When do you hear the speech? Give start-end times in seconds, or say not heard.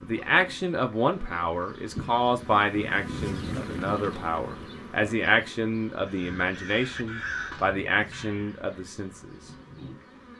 0.0-9.5.